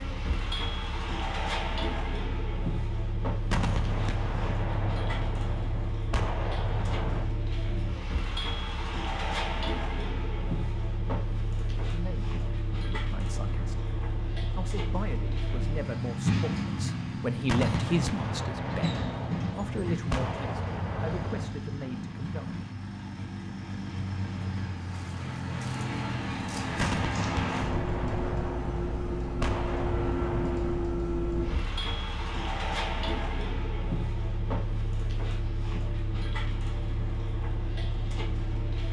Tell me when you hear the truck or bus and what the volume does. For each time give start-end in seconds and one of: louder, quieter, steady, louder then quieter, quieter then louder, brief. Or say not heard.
0.0-38.8 steady.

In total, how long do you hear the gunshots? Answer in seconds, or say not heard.
12 s.